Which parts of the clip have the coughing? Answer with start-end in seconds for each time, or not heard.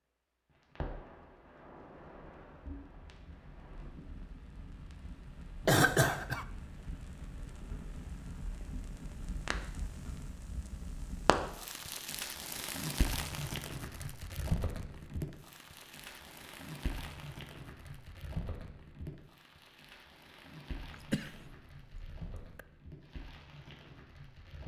5.7-6.5, 20.9-22.6.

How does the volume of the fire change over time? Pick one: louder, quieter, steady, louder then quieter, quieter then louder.
louder then quieter.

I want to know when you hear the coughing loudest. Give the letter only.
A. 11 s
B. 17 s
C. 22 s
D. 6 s
D.